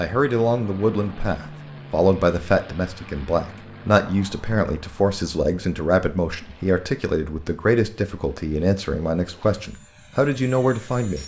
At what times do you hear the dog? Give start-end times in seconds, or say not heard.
not heard.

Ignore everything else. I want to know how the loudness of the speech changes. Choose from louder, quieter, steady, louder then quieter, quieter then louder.
steady.